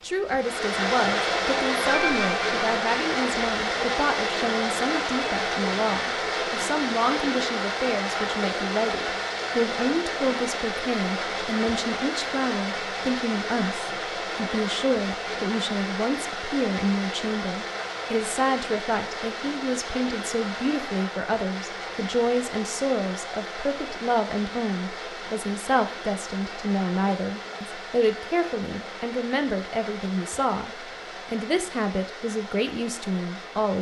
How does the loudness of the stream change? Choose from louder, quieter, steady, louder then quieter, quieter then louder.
quieter.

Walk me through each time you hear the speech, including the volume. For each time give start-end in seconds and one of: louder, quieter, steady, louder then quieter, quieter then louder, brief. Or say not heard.
0.0-33.7 steady.